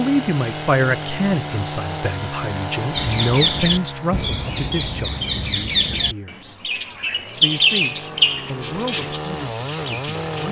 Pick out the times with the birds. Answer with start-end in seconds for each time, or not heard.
2.9-10.3.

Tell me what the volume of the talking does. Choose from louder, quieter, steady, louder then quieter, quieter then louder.
quieter.